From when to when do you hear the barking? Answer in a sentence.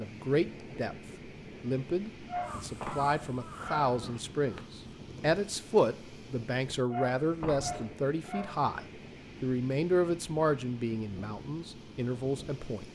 The barking can be heard from 2.2 to 4.2 s and from 6.9 to 8.7 s.